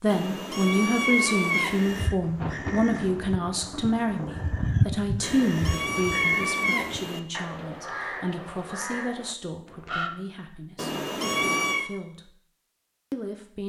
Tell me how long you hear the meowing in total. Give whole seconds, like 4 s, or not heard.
5 s.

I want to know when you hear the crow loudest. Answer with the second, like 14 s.
5 s.